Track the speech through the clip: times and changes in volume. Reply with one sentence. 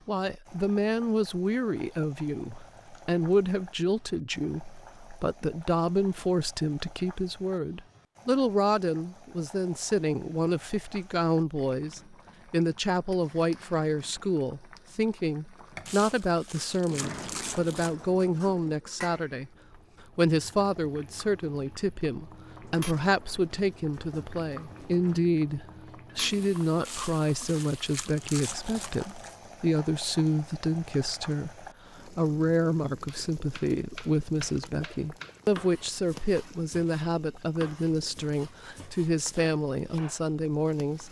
You can hear the speech from 0.1 to 19.5 s, at a steady volume; and from 20.1 to 41.0 s, at a steady volume.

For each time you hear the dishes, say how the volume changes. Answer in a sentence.
You can't hear the dishes here.